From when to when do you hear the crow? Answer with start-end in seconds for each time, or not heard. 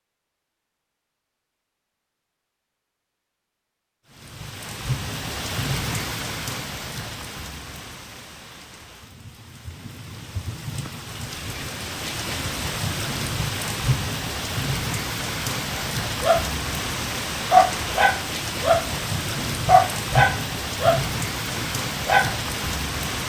not heard.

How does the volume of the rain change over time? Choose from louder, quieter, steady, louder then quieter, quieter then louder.
quieter then louder.